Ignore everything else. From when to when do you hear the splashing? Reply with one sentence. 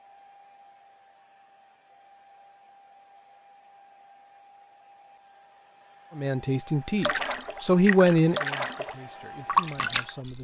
The splashing can be heard from 7.0 to 10.3 s.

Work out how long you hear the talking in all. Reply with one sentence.
The talking can be heard for 4 seconds in total.